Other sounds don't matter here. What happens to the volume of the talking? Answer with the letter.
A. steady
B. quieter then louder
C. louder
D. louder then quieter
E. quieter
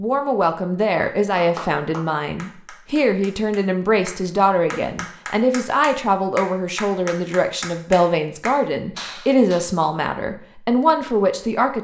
A.